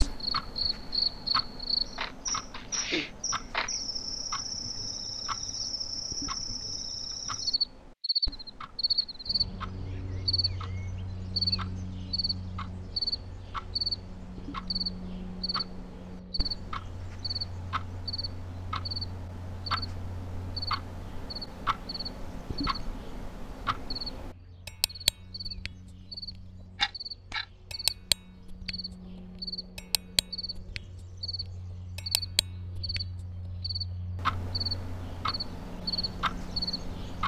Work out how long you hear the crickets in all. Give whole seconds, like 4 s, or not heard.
37 s.